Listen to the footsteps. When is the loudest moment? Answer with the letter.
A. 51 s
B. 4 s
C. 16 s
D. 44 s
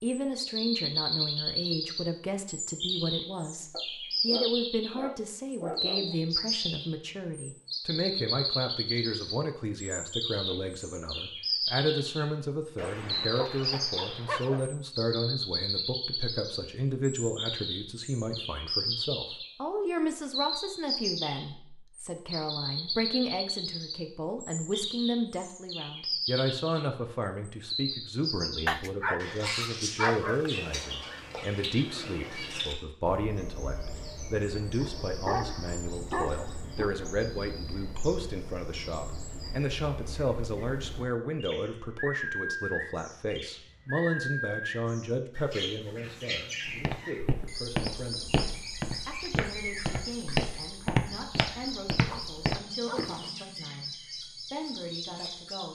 A.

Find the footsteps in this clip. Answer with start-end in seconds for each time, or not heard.
46.6-53.3.